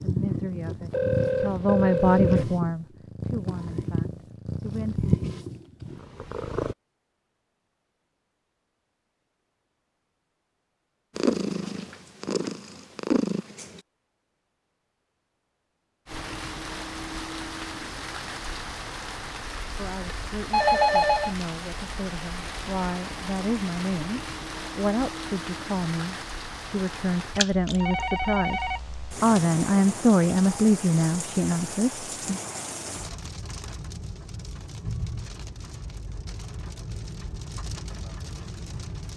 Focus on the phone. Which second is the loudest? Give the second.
21 s.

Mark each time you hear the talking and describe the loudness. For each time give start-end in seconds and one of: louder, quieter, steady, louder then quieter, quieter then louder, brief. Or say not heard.
0.0-5.2 louder then quieter
19.8-32.4 louder.